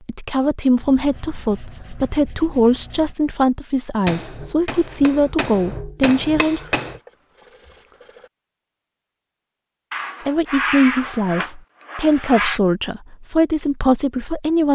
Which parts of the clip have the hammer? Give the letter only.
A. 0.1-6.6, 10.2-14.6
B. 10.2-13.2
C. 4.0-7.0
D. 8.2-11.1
C.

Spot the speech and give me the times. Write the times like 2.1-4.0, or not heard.
0.1-6.6, 10.2-14.6.